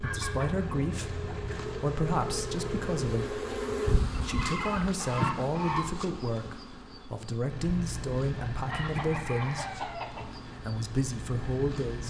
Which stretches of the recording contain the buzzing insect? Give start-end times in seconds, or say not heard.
0.0-12.0.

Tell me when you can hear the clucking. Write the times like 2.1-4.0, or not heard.
0.0-1.6, 4.2-6.0, 8.5-10.4.